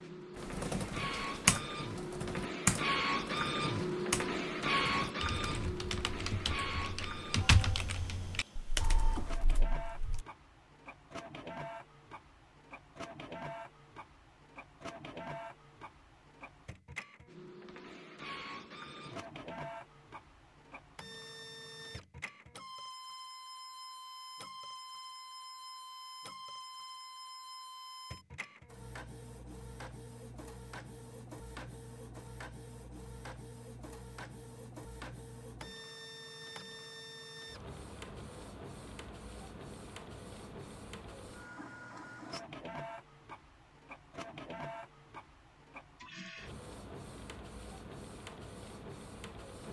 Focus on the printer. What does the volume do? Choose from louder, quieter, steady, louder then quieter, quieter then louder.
quieter.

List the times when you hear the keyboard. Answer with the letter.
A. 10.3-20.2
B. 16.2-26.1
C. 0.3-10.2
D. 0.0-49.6
C.